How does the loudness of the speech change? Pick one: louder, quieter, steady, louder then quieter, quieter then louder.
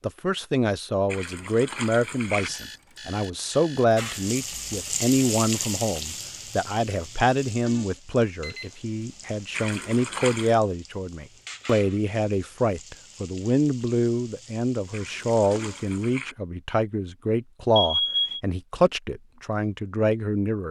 steady.